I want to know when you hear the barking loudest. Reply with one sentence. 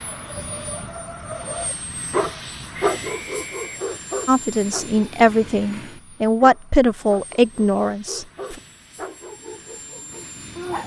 The volume of the barking peaks at 3 seconds.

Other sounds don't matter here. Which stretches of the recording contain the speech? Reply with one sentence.
You can hear the speech from 4.2 to 8.6 s.